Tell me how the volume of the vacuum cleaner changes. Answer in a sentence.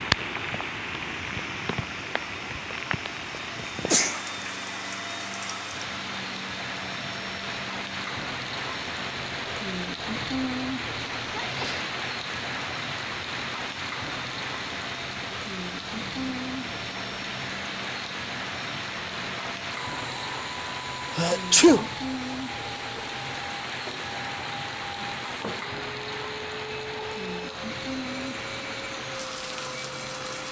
The volume of the vacuum cleaner stays about the same.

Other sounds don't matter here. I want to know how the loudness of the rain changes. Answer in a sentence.
The volume of the rain stays about the same.